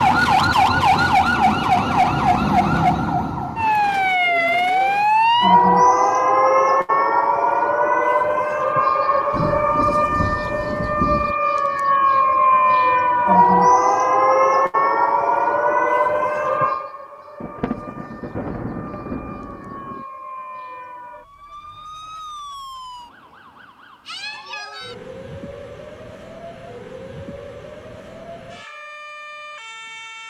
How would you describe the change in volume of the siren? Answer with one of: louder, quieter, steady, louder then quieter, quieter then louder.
quieter.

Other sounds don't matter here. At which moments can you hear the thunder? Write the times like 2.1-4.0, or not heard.
9.3-11.3, 17.4-20.1.